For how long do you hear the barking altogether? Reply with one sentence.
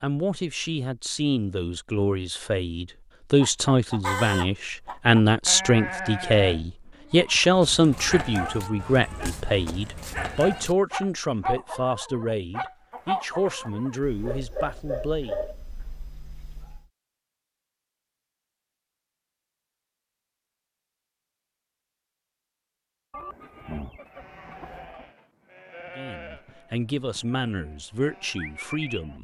The barking can be heard for 9 seconds in total.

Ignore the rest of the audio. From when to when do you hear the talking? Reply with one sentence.
The talking can be heard from 0.0 to 15.3 s and from 25.9 to 29.1 s.